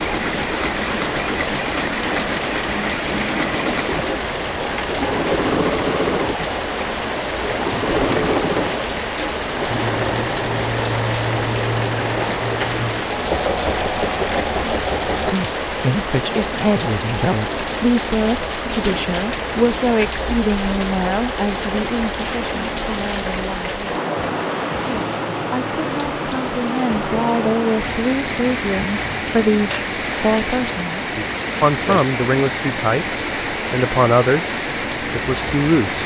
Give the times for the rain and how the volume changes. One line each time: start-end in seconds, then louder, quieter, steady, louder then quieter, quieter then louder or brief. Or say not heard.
0.0-36.0 steady.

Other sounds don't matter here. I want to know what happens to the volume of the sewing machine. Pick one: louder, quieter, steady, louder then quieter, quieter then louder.
steady.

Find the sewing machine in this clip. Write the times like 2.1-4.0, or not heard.
0.0-15.3.